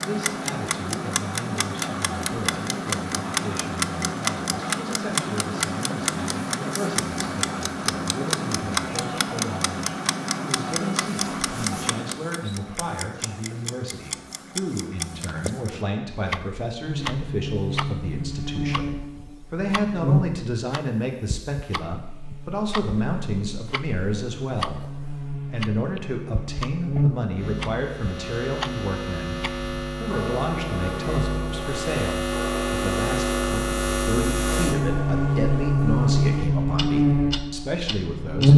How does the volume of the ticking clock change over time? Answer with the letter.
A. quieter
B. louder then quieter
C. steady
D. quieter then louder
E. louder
A.